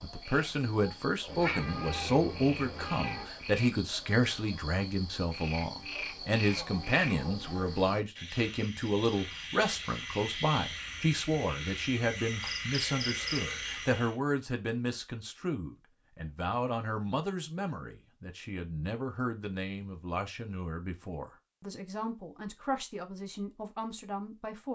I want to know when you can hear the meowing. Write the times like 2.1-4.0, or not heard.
1.2-3.2.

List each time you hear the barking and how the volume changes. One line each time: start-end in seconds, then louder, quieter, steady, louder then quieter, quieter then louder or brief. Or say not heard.
not heard.